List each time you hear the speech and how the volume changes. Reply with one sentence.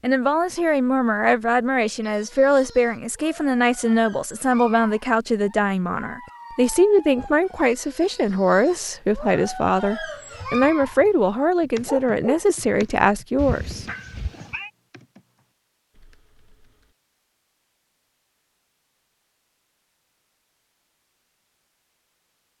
The speech can be heard from 0.0 to 13.8 s, at a steady volume.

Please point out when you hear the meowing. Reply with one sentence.
You can hear the meowing from 13.3 to 14.7 s.